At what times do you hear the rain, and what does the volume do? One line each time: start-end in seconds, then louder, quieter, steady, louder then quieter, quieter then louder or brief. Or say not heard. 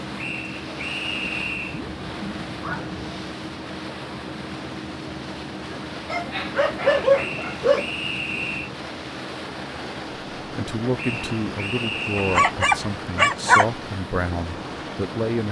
not heard.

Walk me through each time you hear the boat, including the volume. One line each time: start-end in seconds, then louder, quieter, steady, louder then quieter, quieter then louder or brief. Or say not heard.
0.0-15.4 steady.